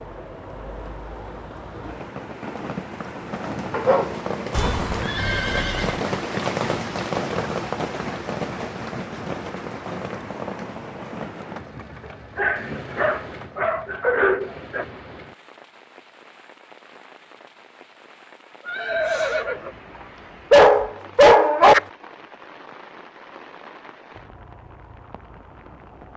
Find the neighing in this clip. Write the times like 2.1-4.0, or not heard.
4.5-6.0, 18.6-19.8.